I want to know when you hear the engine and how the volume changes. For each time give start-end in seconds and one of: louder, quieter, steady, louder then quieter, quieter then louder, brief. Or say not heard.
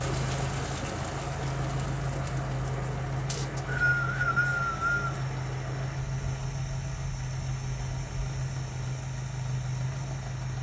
0.0-10.5 steady.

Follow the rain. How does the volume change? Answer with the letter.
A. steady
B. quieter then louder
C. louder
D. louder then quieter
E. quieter
E.